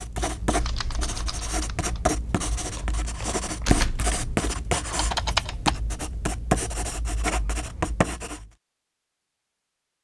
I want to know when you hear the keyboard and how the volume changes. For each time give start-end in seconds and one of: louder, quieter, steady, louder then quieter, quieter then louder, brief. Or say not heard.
0.6-5.8 quieter then louder.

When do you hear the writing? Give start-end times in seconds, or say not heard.
0.0-8.5.